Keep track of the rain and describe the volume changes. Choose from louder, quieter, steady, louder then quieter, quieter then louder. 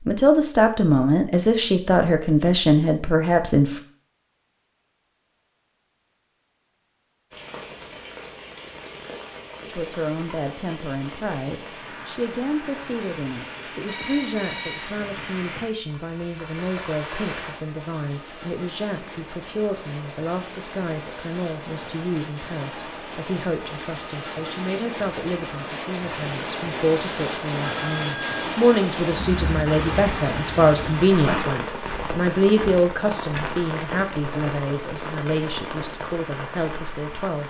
louder.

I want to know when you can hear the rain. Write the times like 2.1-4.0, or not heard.
7.3-37.4.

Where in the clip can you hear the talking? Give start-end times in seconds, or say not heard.
0.1-3.8, 9.7-37.4.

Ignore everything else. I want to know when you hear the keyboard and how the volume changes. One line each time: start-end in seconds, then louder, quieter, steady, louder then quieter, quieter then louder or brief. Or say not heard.
not heard.